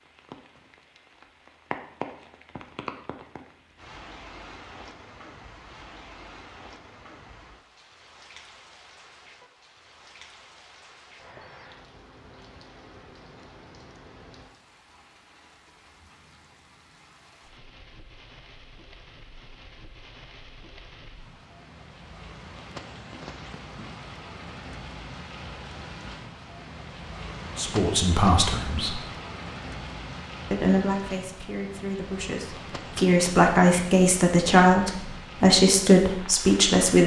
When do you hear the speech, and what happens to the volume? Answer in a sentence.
The speech can be heard briefly from 27.6 to 28.9 s; and from 30.5 to 37.0 s, getting louder.